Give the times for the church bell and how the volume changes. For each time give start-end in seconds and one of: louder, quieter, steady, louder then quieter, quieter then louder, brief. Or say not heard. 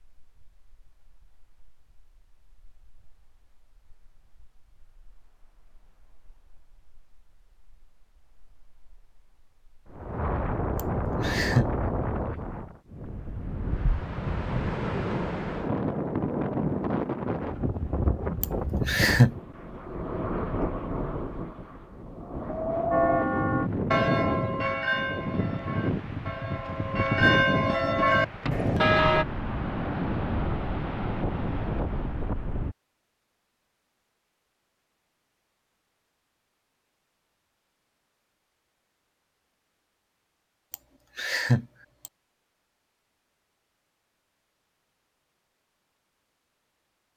22.9-29.2 quieter then louder.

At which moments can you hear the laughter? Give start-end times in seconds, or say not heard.
10.8-11.7, 18.4-19.3, 40.7-42.1.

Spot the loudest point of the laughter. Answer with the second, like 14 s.
19 s.